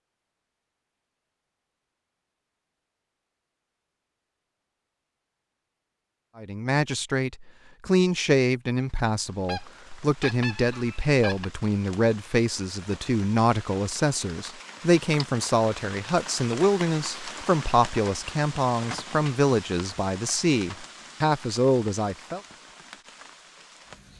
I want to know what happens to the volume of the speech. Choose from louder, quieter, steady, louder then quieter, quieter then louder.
steady.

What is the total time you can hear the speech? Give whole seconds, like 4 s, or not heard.
16 s.